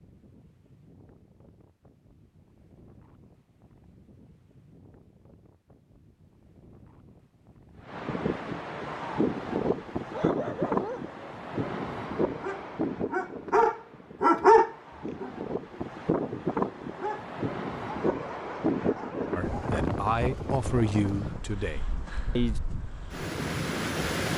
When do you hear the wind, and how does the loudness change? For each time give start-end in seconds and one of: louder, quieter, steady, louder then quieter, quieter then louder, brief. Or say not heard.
0.0-24.3 louder.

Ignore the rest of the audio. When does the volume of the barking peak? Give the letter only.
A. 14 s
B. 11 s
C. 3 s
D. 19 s
A.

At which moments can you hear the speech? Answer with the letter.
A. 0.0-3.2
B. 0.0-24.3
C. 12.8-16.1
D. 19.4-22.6
D.